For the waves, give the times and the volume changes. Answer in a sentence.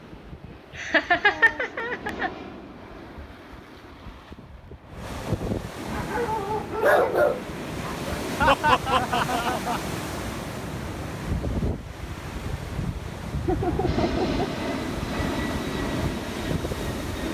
You can hear the waves from 0.0 to 17.2 s, getting louder.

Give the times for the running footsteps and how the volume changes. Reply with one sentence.
You can't hear the running footsteps here.